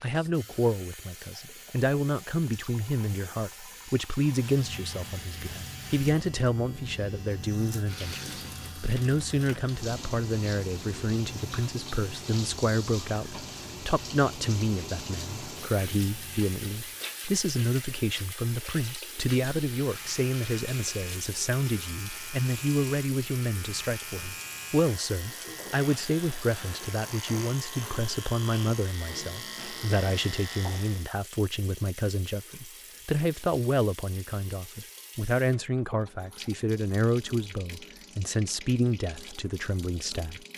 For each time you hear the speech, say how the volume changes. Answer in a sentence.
The speech can be heard from 0.0 to 40.4 s, at a steady volume.